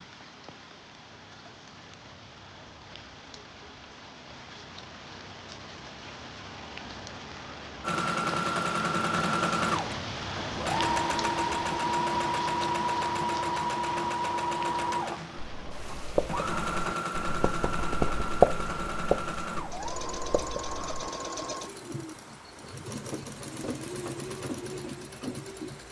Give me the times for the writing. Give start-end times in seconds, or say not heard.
15.3-21.2.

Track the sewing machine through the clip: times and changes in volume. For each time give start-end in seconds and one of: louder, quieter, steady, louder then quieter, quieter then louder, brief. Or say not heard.
7.8-25.8 quieter.